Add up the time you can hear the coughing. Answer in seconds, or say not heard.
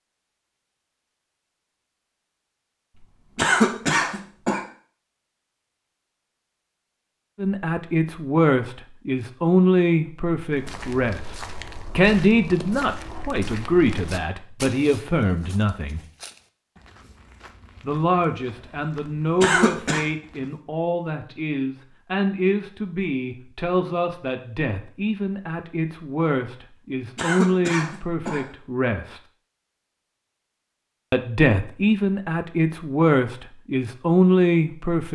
3 s.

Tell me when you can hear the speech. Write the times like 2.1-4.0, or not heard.
7.3-11.3, 11.9-16.0, 17.8-29.2, 31.1-35.1.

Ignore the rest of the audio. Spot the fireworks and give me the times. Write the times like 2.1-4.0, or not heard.
not heard.